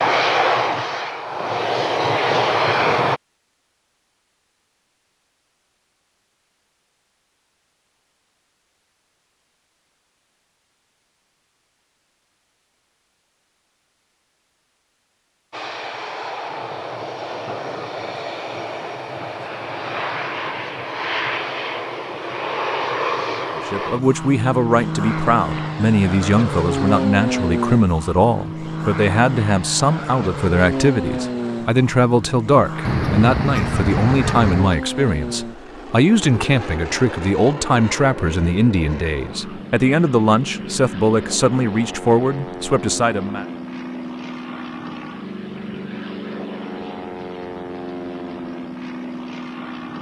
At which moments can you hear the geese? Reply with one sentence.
The geese can be heard from 32.8 to 34.8 s.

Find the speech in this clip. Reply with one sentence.
You can hear the speech from 23.6 to 43.5 s.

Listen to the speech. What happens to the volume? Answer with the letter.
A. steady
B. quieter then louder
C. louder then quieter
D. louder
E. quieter
A.